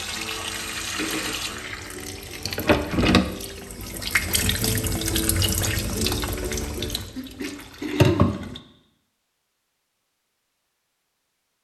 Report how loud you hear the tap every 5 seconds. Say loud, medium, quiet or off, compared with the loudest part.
loud, loud, off.